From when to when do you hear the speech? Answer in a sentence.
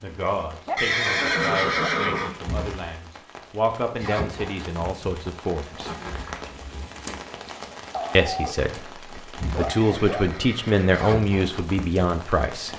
You can hear the speech from 0.0 to 5.9 s, from 8.2 to 8.8 s and from 9.6 to 12.7 s.